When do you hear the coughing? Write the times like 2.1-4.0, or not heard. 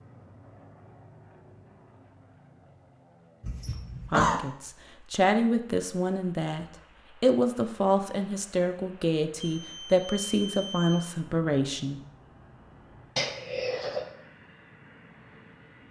3.4-4.4, 13.2-14.1.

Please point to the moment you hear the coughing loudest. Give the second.
4 s.